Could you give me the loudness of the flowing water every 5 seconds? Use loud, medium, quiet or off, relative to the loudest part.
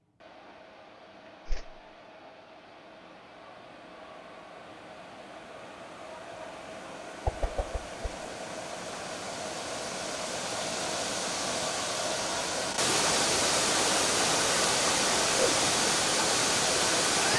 quiet, quiet, loud, loud.